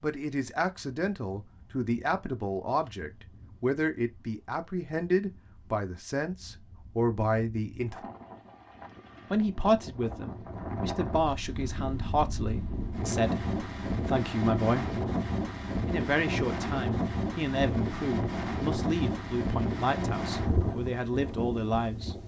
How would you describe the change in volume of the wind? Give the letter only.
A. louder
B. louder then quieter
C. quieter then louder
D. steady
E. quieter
A.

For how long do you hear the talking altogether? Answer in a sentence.
You can hear the talking for 20 seconds altogether.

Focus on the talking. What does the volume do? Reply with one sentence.
The loudness of the talking stays about the same.